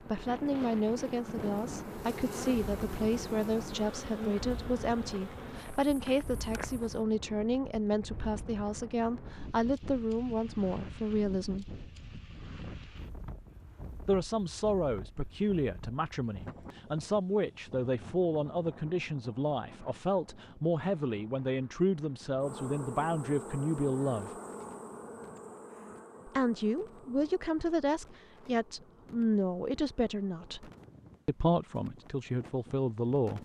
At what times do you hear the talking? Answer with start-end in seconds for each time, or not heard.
0.0-11.7, 14.1-24.3, 26.2-33.3.